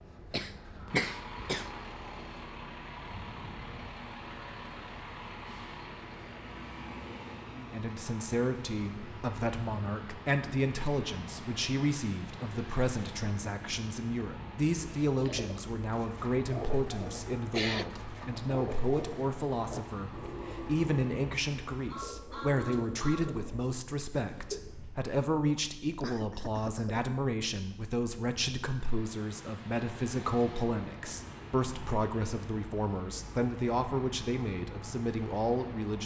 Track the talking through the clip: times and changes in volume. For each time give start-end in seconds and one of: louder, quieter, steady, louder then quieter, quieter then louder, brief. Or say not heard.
7.5-36.0 steady.